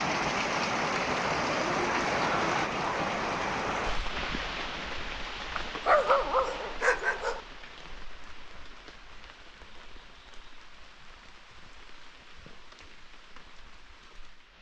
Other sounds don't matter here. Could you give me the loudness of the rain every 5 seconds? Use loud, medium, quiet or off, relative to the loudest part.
loud, quiet, quiet.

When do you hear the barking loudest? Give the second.
6 s.